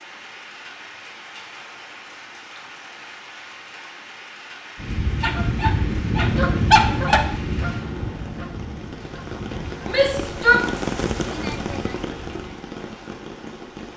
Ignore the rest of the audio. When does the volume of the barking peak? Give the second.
7 s.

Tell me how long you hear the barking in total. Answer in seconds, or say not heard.
2 s.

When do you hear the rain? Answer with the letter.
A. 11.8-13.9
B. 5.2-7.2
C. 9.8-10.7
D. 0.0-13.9
D.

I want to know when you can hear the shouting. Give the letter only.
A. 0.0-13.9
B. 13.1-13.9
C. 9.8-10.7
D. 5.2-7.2
C.